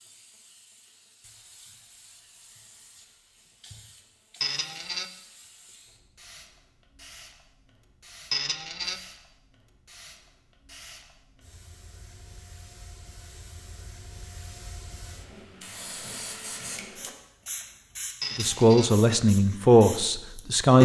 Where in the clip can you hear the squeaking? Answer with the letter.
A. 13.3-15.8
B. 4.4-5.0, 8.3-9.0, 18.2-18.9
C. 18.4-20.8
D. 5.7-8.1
B.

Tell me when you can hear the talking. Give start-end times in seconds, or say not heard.
18.4-20.8.